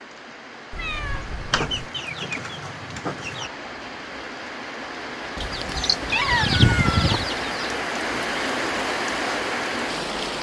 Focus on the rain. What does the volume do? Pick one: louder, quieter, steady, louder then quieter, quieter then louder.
louder.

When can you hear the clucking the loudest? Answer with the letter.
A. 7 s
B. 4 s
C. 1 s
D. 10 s
A.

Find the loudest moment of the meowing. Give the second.
6 s.